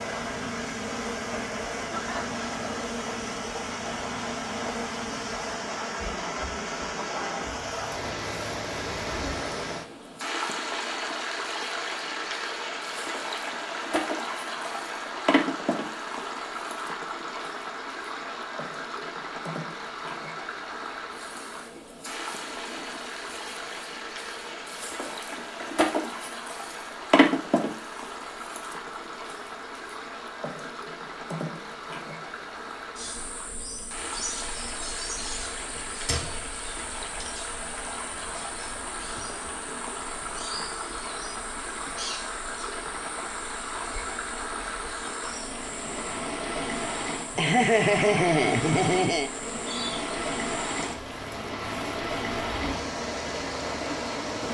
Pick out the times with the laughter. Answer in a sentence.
You can hear the laughter from 1.9 to 2.4 s and from 47.4 to 49.3 s.